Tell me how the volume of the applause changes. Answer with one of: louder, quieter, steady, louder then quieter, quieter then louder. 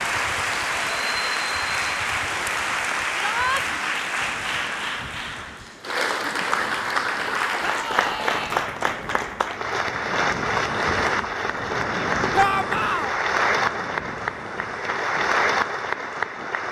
steady.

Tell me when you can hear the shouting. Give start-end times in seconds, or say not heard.
3.1-3.6, 7.6-8.7, 12.3-13.2.